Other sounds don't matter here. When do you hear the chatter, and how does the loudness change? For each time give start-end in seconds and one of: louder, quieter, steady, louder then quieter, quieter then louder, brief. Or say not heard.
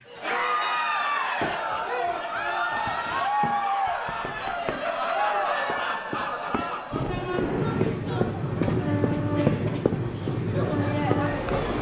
0.1-11.7 quieter.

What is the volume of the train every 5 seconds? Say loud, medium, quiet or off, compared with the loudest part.
off, loud, loud.